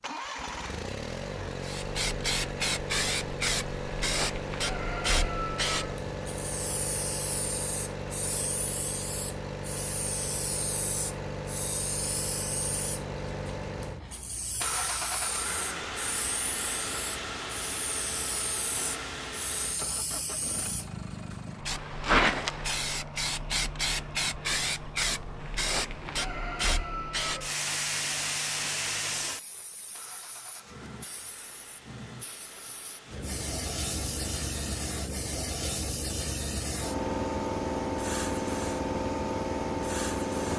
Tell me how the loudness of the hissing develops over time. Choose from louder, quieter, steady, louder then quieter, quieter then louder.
quieter then louder.